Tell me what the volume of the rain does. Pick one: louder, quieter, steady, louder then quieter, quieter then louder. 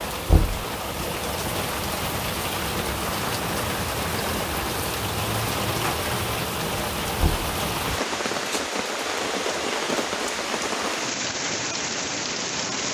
steady.